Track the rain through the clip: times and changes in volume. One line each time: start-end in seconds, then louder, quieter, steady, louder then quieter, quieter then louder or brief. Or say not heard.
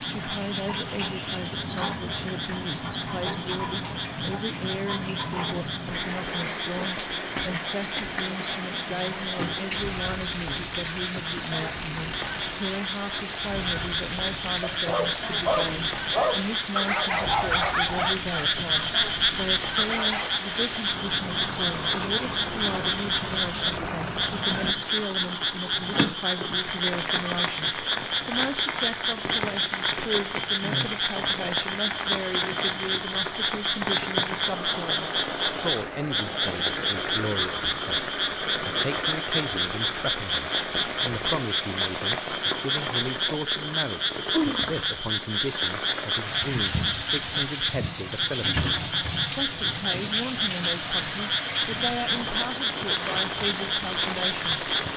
0.0-54.9 steady.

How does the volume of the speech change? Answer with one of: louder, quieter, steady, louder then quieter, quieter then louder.
steady.